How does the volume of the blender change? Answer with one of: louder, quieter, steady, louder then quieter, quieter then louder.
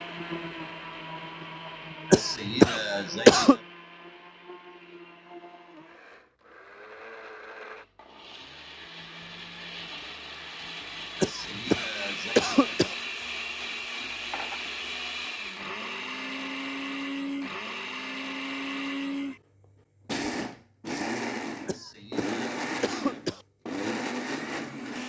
louder.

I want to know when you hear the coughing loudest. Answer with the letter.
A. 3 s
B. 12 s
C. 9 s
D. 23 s
A.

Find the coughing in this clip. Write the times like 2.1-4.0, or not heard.
2.1-3.5, 11.2-12.9, 21.6-23.4.